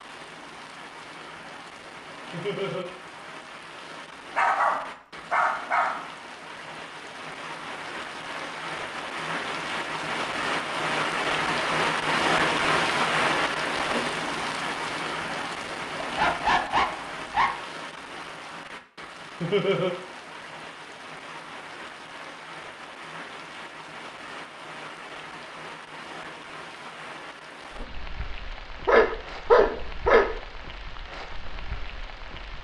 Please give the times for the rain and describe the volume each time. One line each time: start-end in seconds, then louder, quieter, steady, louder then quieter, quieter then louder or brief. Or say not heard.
0.0-32.5 louder then quieter.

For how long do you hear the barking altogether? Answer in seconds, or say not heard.
5 s.